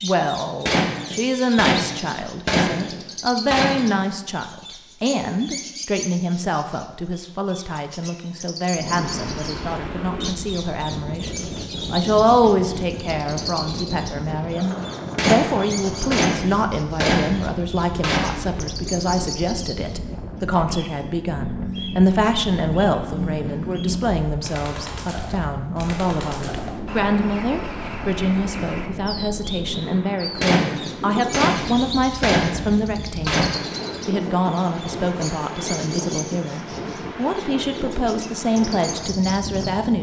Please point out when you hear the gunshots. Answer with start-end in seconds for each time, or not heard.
0.7-4.0, 15.2-18.5, 30.4-33.8.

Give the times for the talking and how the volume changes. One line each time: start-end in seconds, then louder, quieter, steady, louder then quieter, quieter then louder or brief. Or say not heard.
0.0-39.9 steady.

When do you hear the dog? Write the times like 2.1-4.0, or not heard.
not heard.